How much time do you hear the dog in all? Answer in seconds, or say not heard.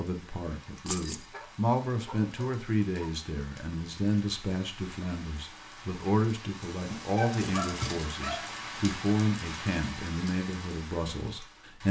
3 s.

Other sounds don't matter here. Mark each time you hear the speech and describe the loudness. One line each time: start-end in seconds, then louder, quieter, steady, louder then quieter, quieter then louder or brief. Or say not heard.
0.0-11.8 steady.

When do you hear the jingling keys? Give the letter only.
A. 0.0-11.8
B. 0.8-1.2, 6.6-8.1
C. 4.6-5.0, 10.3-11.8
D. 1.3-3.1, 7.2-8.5
B.